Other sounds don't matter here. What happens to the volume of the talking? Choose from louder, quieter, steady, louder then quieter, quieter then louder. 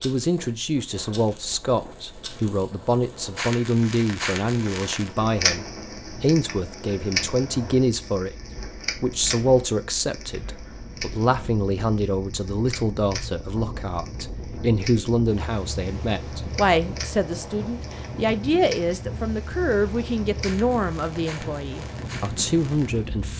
steady.